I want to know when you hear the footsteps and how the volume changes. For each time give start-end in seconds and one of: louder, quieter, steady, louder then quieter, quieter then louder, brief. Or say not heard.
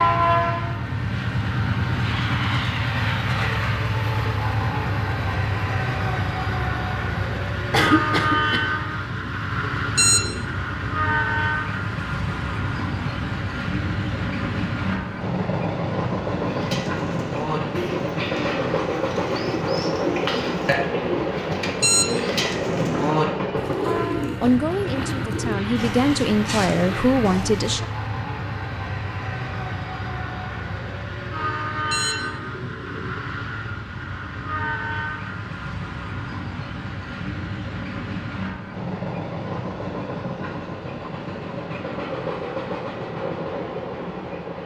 not heard.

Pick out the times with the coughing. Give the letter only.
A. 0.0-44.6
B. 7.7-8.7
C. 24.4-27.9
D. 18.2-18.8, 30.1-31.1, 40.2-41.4
B.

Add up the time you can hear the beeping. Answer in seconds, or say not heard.
3 s.